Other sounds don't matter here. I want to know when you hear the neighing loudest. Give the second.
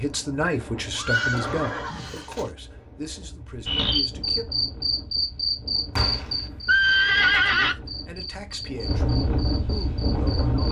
7 s.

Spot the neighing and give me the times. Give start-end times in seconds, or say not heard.
0.9-2.5, 6.0-7.8.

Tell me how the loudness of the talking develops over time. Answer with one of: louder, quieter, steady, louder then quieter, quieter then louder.
quieter.